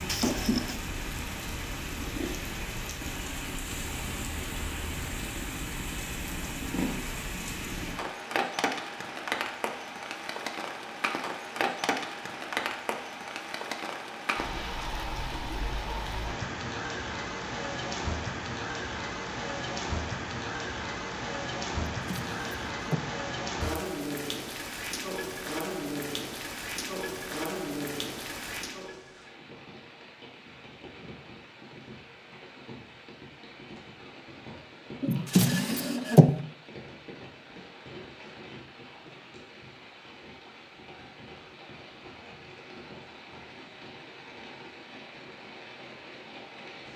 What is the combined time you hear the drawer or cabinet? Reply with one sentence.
You can hear the drawer or cabinet for 3 seconds altogether.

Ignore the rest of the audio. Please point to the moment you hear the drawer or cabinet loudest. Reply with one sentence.
The loudest moment of the drawer or cabinet is at 36 seconds.